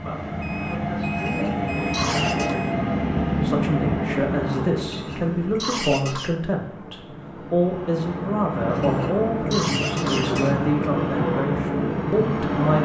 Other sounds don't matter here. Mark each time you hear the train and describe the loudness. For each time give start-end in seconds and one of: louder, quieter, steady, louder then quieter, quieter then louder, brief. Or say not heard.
0.0-12.8 quieter then louder.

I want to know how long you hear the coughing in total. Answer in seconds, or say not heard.
5 s.